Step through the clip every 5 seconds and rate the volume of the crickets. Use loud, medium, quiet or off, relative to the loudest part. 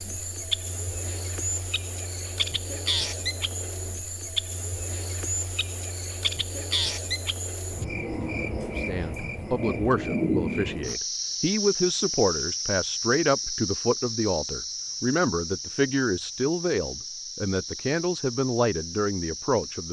loud, loud, loud, medium.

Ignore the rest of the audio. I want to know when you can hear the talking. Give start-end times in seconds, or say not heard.
8.8-19.8.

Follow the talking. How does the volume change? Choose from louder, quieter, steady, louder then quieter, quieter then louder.
steady.